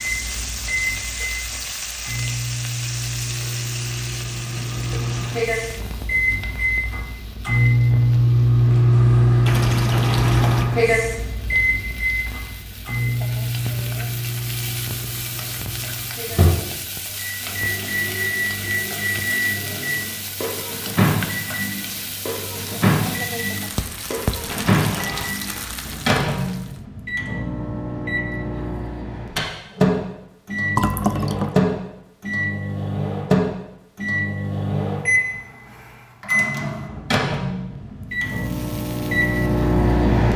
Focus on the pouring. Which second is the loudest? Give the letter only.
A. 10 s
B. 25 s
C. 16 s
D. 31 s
D.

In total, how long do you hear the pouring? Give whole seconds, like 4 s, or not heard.
3 s.